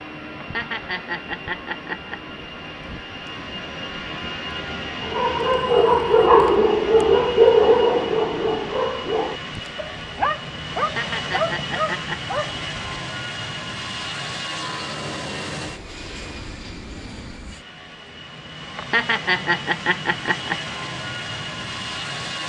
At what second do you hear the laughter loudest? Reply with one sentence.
The loudest moment of the laughter is at 19 seconds.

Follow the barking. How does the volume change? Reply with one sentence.
The loudness of the barking goes down.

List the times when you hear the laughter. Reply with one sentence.
You can hear the laughter from 0.4 to 2.2 s, from 10.8 to 12.3 s and from 18.8 to 20.6 s.